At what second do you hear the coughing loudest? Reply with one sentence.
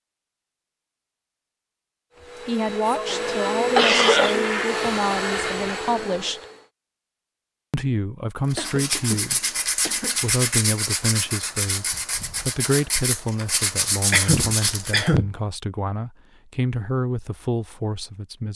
The loudest moment of the coughing is at 4 seconds.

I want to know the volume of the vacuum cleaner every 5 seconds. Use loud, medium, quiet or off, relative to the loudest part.
loud, loud, off, off.